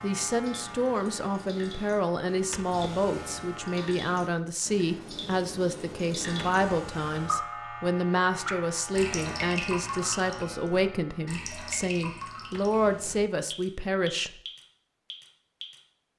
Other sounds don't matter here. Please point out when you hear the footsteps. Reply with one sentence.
The footsteps can't be heard in this clip.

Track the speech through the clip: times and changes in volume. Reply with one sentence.
The speech can be heard from 0.0 to 14.3 s, at a steady volume.